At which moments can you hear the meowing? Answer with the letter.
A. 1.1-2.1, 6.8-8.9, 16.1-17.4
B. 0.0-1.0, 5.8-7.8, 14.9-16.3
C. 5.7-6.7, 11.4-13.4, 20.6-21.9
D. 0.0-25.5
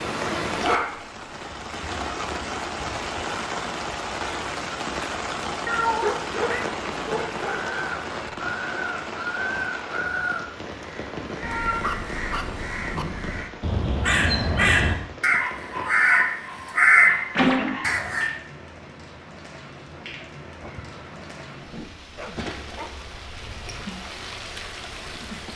C.